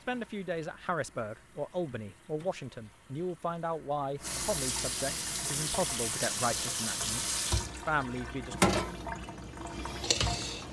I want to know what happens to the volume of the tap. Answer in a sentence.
The volume of the tap goes up.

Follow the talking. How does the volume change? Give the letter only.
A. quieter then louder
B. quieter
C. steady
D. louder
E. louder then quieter
C.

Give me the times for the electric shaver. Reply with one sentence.
You can't hear the electric shaver here.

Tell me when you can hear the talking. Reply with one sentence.
The talking can be heard from 0.1 to 8.7 s.